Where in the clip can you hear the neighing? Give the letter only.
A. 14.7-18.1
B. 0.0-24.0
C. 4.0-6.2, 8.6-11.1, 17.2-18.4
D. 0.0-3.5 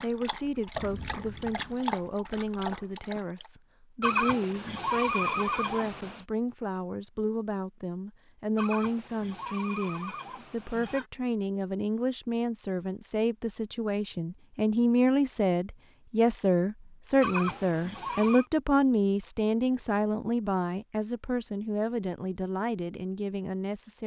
C.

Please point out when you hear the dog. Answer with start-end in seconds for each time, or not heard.
0.0-3.5.